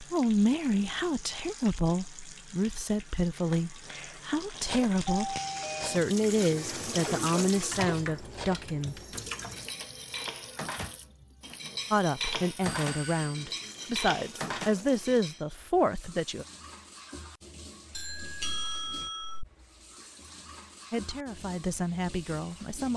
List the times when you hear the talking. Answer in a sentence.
The talking can be heard from 0.0 to 9.0 s, from 11.9 to 16.4 s and from 20.9 to 22.9 s.